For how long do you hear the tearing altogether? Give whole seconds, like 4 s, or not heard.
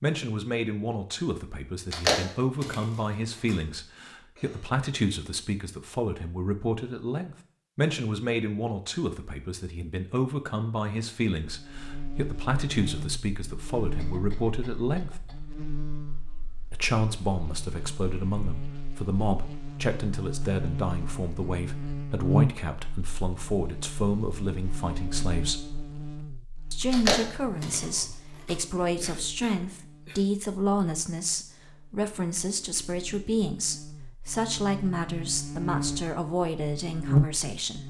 3 s.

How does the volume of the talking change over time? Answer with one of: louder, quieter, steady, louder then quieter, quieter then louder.
steady.